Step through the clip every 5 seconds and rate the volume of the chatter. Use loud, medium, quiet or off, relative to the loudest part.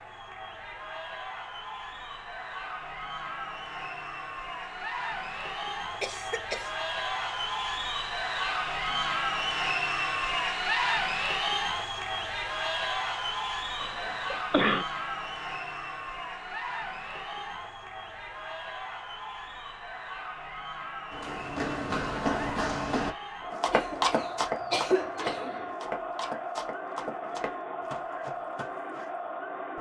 medium, loud, loud, medium, medium, medium.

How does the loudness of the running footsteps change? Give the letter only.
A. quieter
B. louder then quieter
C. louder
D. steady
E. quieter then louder
A.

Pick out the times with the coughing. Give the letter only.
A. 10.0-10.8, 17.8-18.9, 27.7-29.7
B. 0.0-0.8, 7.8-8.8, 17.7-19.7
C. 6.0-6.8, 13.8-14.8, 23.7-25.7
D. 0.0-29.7
C.